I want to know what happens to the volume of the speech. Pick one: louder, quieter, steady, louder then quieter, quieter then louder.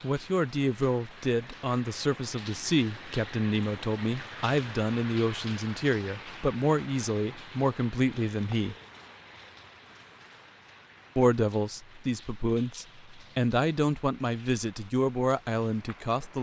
steady.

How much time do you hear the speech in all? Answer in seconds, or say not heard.
14 s.